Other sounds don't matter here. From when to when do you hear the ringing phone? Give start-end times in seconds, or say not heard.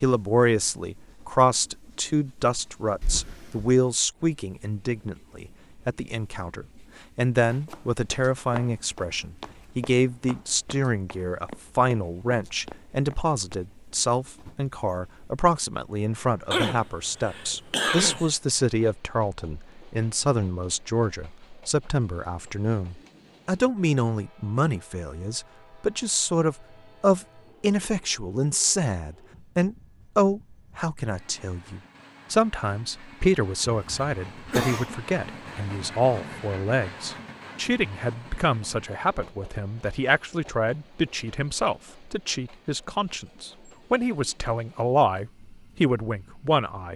not heard.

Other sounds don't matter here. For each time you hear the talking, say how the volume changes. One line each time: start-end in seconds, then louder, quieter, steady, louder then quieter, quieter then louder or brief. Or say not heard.
0.0-46.9 steady.